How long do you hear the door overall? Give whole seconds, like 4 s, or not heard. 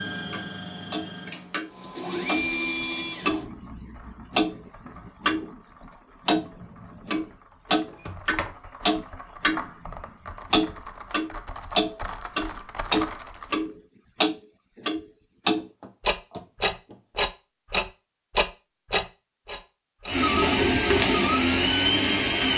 2 s.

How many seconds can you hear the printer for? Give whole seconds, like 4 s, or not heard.
6 s.